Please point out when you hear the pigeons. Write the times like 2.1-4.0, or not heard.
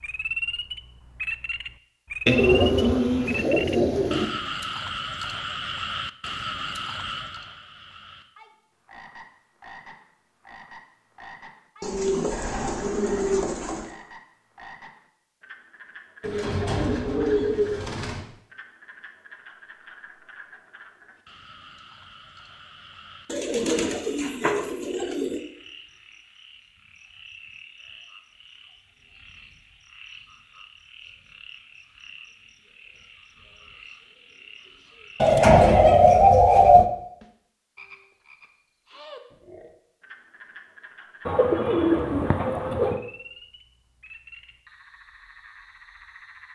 2.2-4.2, 11.8-13.9, 16.2-18.2, 23.3-25.4, 35.2-36.9, 41.2-43.0.